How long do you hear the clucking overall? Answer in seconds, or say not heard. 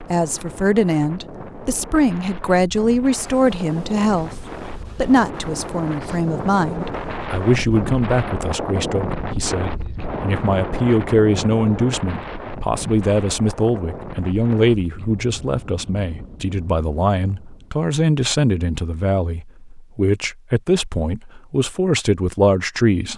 not heard.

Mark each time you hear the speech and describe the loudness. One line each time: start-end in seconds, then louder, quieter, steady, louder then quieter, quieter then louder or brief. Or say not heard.
0.0-23.1 steady.